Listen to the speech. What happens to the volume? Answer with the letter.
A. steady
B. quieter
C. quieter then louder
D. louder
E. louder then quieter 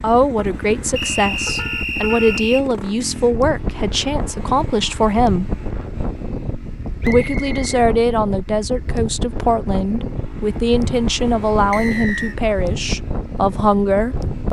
A.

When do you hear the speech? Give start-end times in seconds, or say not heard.
0.0-5.5, 7.0-14.4.